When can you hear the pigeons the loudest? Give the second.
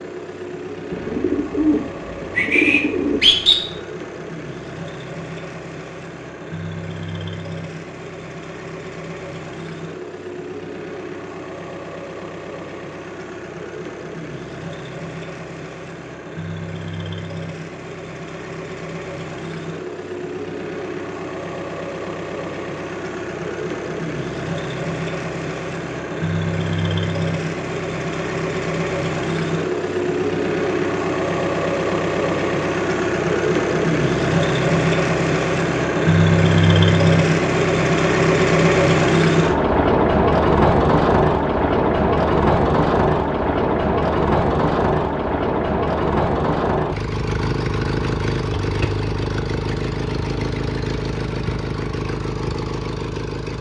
3 s.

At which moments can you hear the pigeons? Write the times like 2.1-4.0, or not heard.
0.9-3.5.